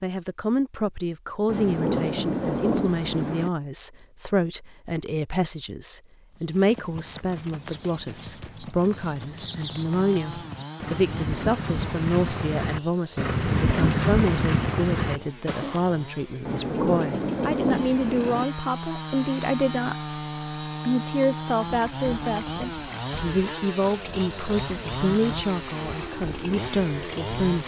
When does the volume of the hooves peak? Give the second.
14 s.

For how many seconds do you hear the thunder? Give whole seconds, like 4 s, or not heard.
4 s.